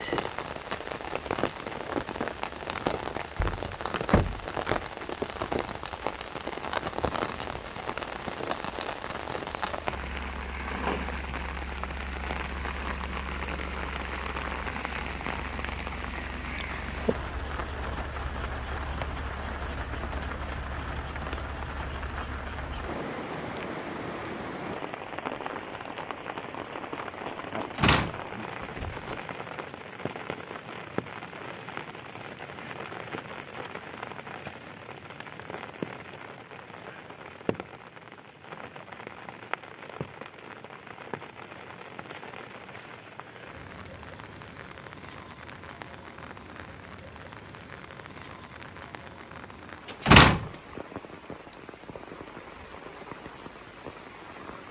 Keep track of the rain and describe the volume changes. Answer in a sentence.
The volume of the rain goes down.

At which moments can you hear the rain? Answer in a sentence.
You can hear the rain from 0.0 to 54.6 s.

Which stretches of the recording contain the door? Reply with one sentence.
The door can be heard from 3.4 to 4.8 s, from 27.6 to 29.1 s and from 50.0 to 50.5 s.